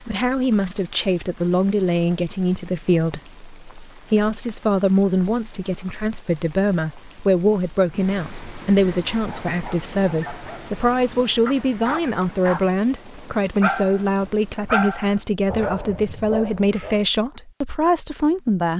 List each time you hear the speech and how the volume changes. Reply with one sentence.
The speech can be heard from 0.1 to 18.7 s, at a steady volume.